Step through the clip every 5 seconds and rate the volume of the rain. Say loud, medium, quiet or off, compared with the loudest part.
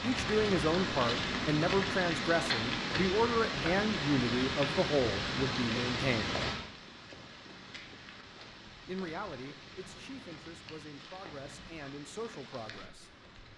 loud, medium, quiet.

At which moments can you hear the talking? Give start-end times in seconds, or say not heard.
0.0-6.4, 8.8-13.1.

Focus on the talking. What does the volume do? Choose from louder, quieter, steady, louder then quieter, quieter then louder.
quieter.